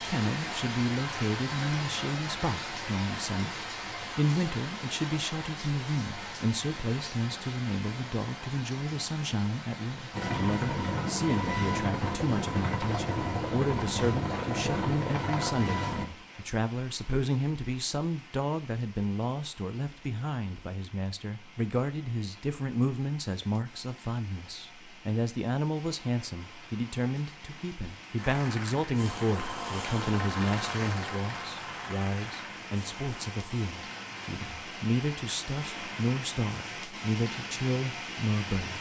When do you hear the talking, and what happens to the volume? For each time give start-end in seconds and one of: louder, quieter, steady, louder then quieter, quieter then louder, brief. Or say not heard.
0.0-38.7 steady.